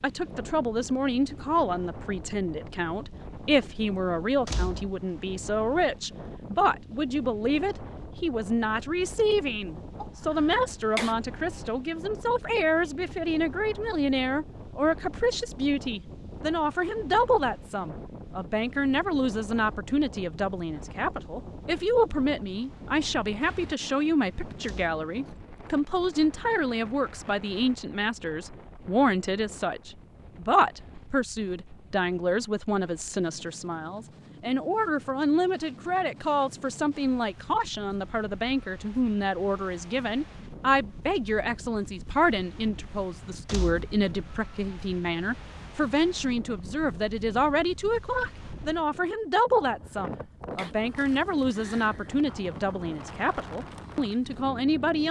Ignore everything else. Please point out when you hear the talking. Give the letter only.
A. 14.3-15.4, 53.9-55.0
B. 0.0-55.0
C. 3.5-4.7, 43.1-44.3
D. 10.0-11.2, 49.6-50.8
B.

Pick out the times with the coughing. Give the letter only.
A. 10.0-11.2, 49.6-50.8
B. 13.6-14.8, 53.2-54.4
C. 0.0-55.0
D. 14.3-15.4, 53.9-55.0
A.